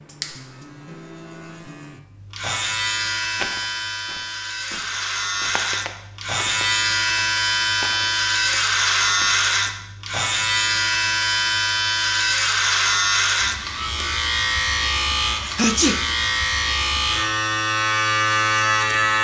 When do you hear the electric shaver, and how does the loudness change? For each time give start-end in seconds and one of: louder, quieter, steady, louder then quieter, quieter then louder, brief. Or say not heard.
0.0-19.1 louder.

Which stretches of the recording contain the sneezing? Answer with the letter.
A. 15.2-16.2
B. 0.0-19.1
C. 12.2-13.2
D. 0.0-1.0
A.